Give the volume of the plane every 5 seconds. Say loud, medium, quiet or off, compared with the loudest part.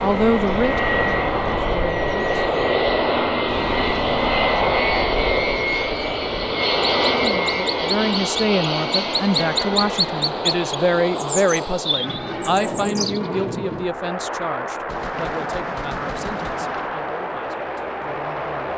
loud, loud, medium, medium.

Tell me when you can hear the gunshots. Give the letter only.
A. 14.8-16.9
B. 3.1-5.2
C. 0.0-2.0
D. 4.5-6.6
A.